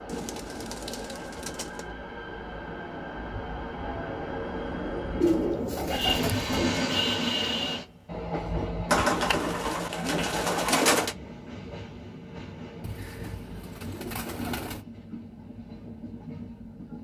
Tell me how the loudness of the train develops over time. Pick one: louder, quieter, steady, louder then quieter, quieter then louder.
louder then quieter.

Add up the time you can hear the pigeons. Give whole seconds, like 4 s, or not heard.
8 s.